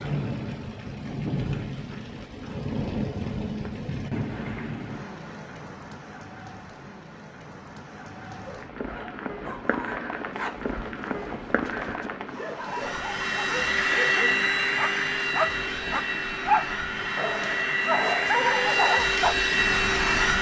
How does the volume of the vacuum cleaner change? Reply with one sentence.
The loudness of the vacuum cleaner goes down, then up.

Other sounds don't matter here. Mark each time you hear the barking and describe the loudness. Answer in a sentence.
You can hear the barking from 8.4 to 19.4 s, getting louder.